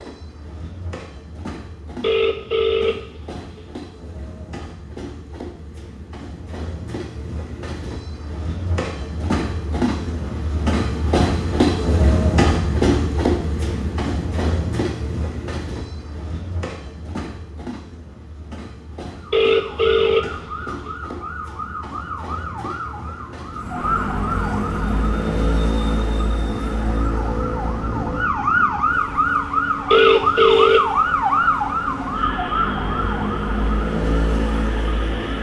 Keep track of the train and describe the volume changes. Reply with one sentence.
The volume of the train goes up, then down.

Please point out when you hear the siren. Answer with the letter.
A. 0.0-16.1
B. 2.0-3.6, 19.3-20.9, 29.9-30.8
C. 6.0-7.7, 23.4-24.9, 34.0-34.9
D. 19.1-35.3
D.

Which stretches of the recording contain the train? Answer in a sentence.
The train can be heard from 0.0 to 35.3 s.